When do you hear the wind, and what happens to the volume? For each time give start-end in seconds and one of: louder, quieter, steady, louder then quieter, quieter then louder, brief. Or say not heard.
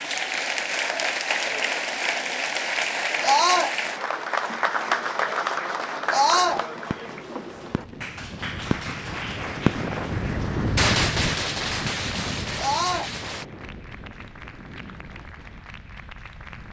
7.5-16.6 louder then quieter.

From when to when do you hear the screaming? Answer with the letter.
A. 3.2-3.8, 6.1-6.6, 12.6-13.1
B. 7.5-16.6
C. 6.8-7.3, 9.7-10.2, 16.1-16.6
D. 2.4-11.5
A.